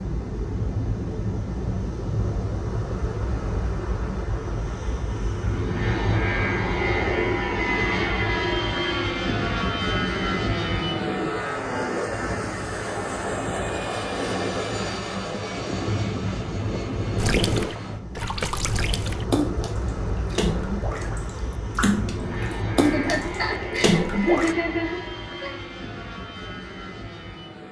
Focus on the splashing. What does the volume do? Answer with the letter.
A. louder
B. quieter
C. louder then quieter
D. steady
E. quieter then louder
A.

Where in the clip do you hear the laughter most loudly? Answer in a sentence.
The loudest moment of the laughter is at 24 seconds.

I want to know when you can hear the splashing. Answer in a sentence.
You can hear the splashing from 17.1 to 24.6 s.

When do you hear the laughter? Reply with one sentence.
The laughter can be heard from 22.9 to 25.5 s.